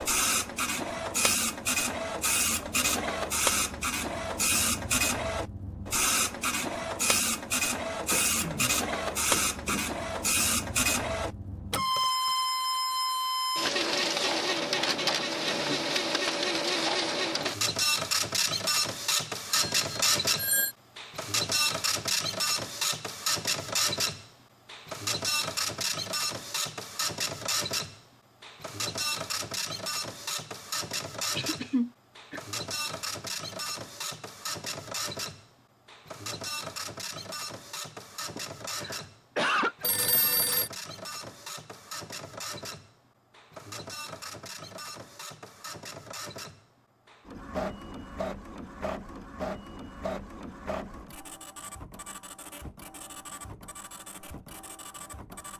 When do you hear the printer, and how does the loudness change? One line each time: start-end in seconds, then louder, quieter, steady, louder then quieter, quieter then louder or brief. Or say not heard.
0.0-55.5 quieter.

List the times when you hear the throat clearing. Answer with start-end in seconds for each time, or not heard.
8.1-9.8, 31.4-32.4, 38.4-39.9.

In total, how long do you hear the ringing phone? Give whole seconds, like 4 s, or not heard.
2 s.